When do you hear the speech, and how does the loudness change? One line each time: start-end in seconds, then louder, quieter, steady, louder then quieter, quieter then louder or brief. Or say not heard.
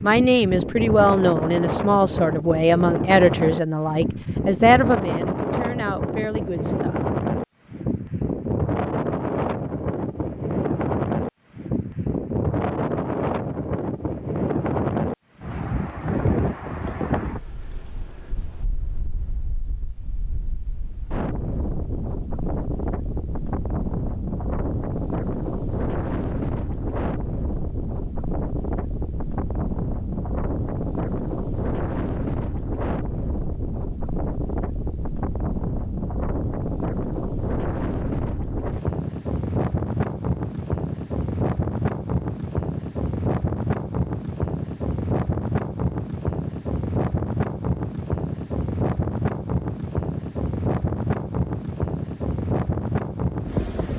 0.0-7.0 quieter.